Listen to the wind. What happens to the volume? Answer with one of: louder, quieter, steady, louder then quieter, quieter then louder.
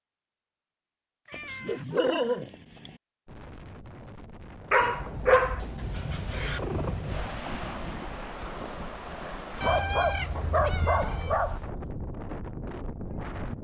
louder.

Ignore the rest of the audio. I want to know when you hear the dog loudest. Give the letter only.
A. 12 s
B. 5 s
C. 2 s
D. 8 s
B.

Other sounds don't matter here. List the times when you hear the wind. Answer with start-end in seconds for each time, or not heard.
3.2-13.5.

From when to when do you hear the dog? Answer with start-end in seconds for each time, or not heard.
1.3-3.0, 4.7-6.6, 9.6-11.6.